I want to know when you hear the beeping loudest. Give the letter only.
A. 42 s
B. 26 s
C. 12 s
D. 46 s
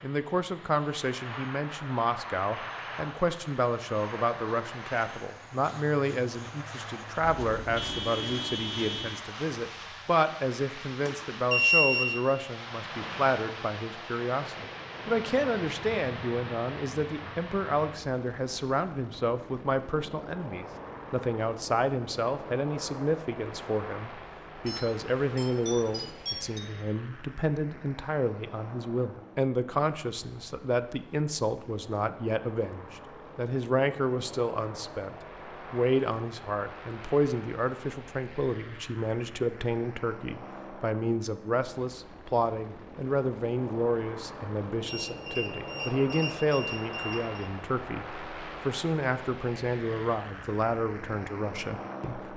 C.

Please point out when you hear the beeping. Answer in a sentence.
The beeping can be heard from 11.1 to 12.1 s, from 24.6 to 26.6 s and from 44.9 to 47.5 s.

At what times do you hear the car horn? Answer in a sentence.
The car horn can be heard from 7.3 to 9.2 s.